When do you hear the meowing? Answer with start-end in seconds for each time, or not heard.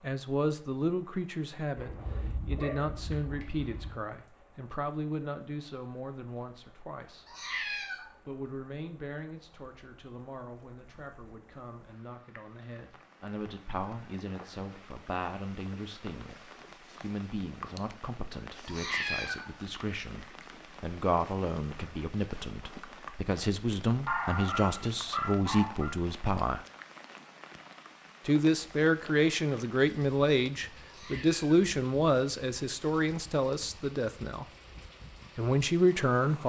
7.2-8.1, 18.6-19.5, 30.9-31.6.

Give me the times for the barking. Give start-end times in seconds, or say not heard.
1.8-4.0, 24.1-25.9.